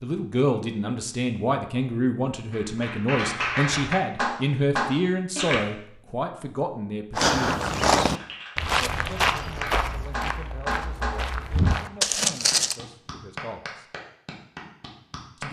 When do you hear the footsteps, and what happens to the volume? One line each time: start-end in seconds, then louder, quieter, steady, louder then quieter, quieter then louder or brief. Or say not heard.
7.1-12.8 quieter then louder.